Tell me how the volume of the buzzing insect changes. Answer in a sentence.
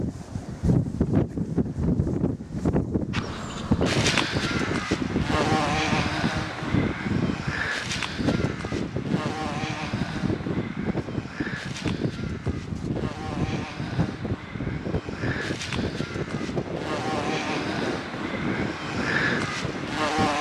The loudness of the buzzing insect goes down, then up.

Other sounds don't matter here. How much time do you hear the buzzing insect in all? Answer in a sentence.
You can hear the buzzing insect for 17 seconds altogether.